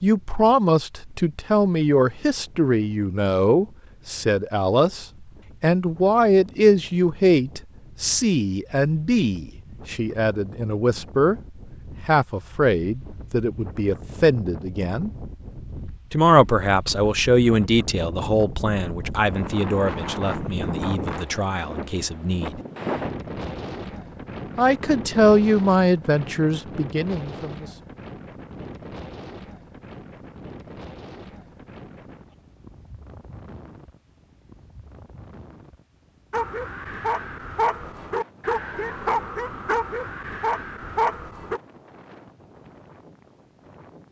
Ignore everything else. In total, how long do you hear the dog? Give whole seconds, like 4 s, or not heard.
5 s.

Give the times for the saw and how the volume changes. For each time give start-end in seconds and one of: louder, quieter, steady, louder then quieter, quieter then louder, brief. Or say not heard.
not heard.